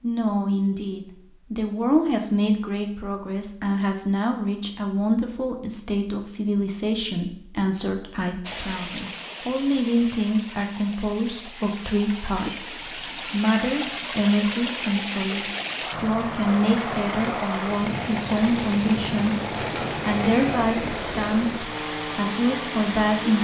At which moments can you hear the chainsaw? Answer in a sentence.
You can hear the chainsaw from 16.4 to 23.3 s.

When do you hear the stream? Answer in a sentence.
You can hear the stream from 8.4 to 23.3 s.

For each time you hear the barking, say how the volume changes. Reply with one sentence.
You can't hear the barking here.